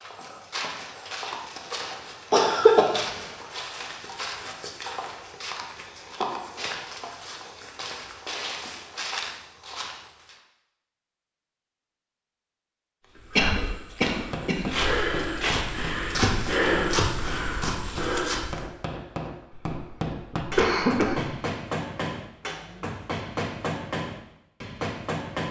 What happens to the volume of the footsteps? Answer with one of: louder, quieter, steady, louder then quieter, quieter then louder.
louder.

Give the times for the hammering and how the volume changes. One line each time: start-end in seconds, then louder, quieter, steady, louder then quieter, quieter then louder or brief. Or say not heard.
13.9-25.4 louder.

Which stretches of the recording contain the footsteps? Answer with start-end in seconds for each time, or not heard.
0.0-10.4, 13.2-18.6.